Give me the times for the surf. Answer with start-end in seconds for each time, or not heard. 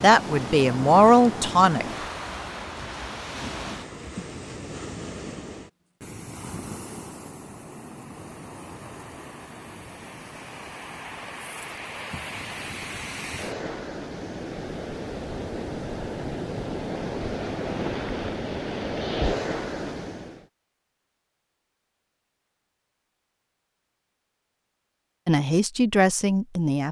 0.0-20.4.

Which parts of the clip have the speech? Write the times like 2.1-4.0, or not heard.
0.0-1.9, 25.2-26.8.